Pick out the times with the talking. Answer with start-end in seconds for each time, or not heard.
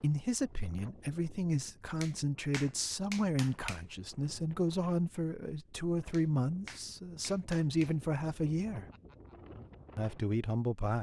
0.0-8.8, 9.9-10.9.